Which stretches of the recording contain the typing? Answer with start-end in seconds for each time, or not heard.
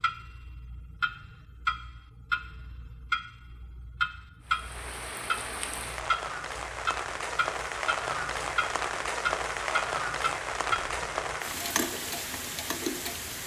not heard.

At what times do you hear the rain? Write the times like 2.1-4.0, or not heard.
4.4-13.4.